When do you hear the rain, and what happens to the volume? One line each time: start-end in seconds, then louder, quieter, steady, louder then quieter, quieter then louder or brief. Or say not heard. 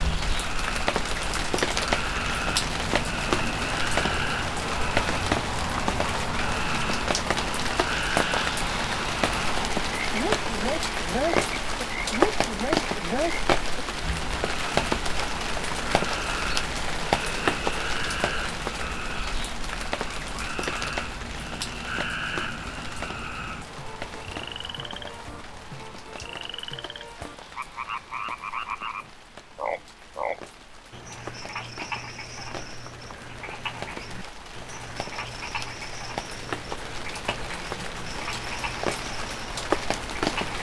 0.0-40.5 quieter then louder.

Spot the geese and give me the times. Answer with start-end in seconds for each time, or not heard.
not heard.